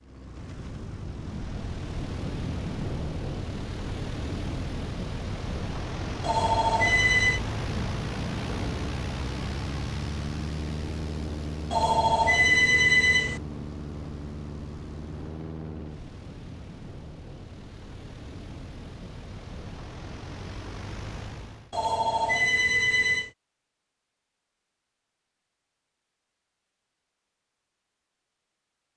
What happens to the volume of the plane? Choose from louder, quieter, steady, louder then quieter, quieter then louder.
quieter.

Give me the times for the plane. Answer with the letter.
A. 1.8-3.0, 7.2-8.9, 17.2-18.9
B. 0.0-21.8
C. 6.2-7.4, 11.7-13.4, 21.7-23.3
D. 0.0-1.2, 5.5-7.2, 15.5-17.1
B.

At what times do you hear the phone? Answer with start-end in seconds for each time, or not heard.
6.2-7.4, 11.7-13.4, 21.7-23.3.